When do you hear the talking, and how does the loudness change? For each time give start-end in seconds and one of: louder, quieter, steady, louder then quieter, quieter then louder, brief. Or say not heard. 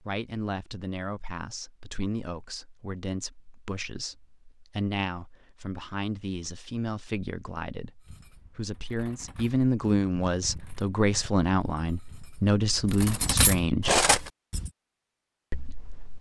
0.0-14.0 louder
15.5-16.1 brief.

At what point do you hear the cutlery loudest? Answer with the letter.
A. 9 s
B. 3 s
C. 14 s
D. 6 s
C.